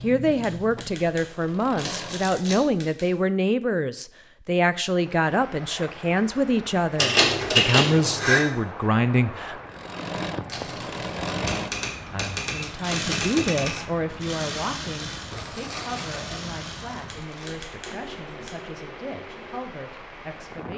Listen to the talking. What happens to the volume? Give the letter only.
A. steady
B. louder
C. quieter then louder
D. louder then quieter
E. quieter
E.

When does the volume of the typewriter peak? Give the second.
8 s.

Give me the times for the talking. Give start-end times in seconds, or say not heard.
0.0-9.6, 12.1-20.7.